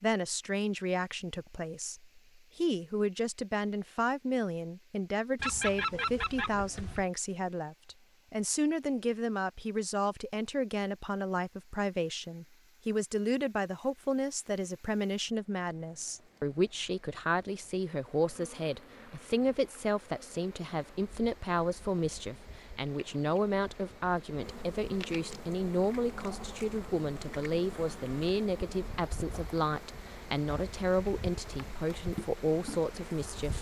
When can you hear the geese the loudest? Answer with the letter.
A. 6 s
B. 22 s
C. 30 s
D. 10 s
A.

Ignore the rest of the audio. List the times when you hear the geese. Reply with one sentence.
The geese can be heard from 5.3 to 7.0 s.